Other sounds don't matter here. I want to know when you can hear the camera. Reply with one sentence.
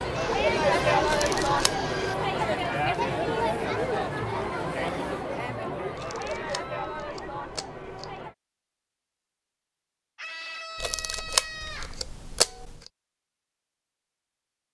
The camera can be heard from 1.1 to 1.8 s, from 6.0 to 8.2 s and from 10.8 to 12.8 s.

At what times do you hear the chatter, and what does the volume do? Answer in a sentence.
You can hear the chatter from 0.0 to 8.3 s, getting quieter.